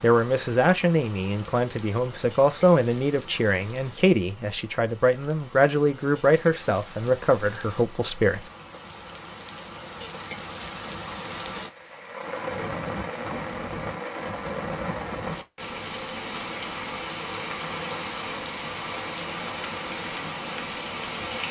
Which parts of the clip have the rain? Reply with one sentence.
The rain can be heard from 0.0 to 21.4 s.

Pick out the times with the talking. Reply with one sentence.
You can hear the talking from 0.0 to 8.5 s.